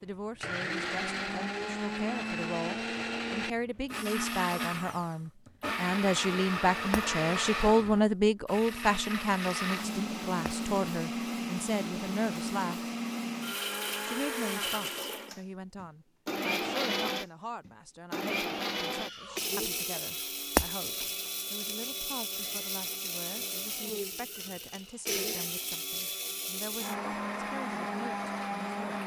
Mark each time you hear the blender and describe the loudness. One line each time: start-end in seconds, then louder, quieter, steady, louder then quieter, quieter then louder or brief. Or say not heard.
0.0-29.0 steady.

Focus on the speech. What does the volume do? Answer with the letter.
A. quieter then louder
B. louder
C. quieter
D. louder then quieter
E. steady
D.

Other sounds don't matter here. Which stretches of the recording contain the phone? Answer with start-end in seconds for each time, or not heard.
not heard.